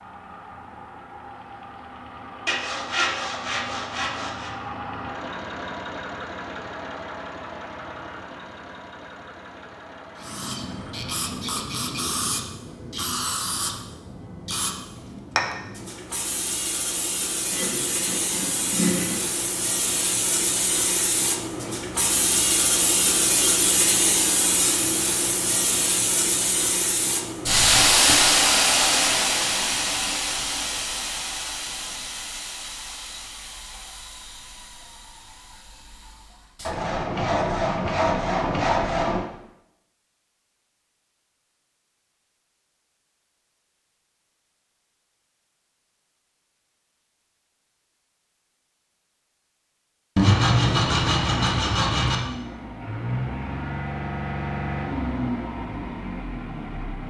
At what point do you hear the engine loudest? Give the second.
55 s.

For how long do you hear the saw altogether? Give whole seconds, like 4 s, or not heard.
8 s.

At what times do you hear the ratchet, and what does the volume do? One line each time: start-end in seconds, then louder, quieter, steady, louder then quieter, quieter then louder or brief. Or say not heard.
not heard.